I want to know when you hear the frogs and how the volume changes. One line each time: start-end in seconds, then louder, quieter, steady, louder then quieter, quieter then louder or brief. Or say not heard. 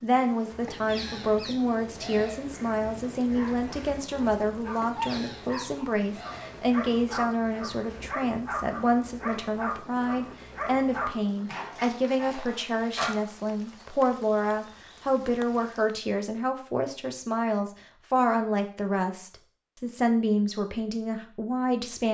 not heard.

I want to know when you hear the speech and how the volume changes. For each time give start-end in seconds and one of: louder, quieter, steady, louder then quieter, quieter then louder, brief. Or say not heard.
0.0-22.0 steady.